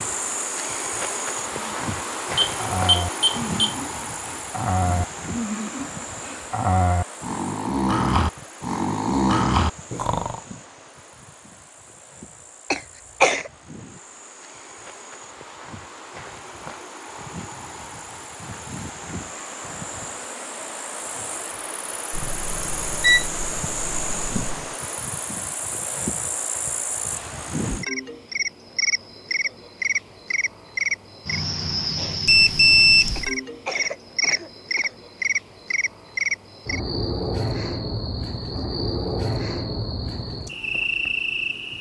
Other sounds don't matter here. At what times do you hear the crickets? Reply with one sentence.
You can hear the crickets from 0.0 to 41.7 s.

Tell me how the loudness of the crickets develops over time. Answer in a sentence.
The volume of the crickets goes down, then up.